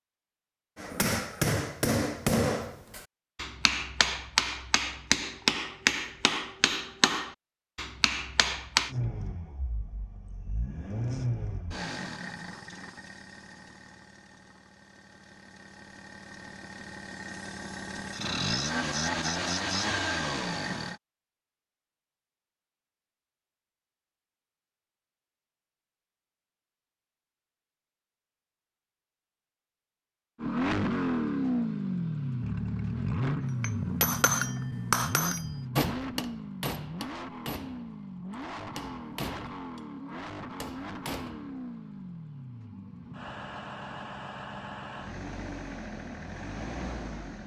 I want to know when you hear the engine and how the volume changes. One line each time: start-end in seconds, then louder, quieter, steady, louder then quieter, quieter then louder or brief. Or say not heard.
8.8-21.0 quieter then louder
30.4-47.4 quieter.